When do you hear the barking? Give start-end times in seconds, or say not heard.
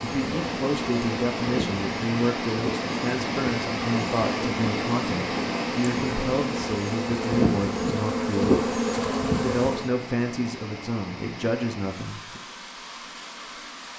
not heard.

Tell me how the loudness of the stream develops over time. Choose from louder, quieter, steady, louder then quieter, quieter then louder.
quieter.